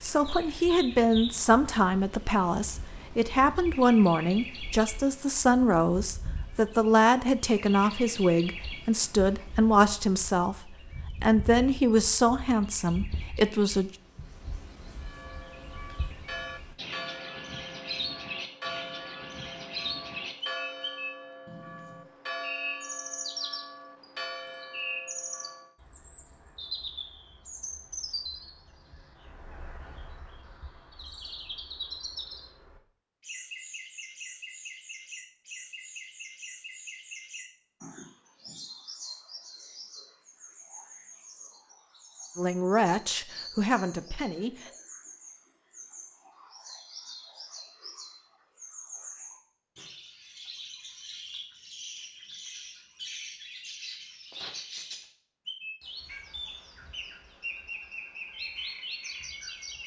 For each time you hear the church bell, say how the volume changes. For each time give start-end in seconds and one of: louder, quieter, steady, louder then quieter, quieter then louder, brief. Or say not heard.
14.9-25.7 steady.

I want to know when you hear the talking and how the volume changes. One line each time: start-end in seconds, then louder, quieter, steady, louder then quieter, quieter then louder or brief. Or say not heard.
0.0-13.9 steady
42.4-44.7 brief.